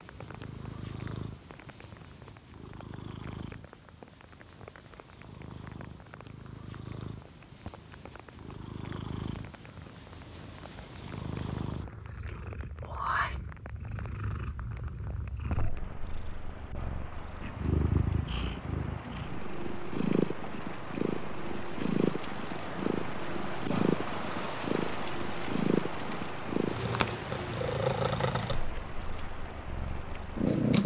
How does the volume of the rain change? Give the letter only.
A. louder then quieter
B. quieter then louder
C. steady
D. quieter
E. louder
E.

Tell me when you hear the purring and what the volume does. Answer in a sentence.
The purring can be heard from 0.0 to 30.8 s, getting louder.